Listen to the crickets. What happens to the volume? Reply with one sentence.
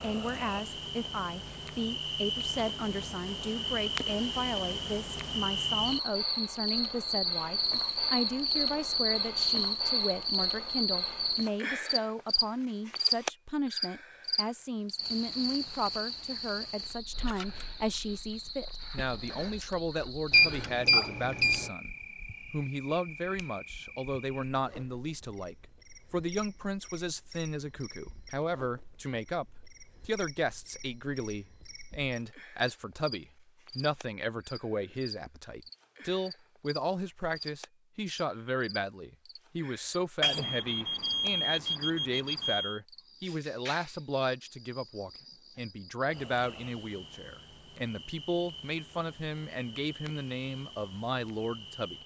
The volume of the crickets goes down.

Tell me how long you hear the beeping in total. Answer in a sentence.
The beeping can be heard for 4 seconds in total.